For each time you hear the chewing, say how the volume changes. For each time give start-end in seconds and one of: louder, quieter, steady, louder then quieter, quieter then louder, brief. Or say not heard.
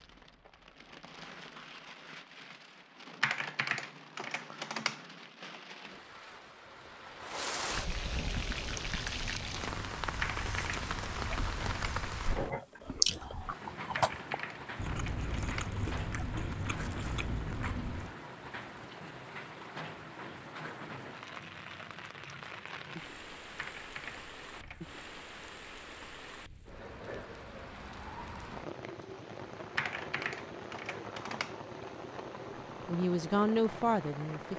8.3-18.1 louder then quieter.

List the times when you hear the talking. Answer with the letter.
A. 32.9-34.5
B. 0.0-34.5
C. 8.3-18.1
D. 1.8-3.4
A.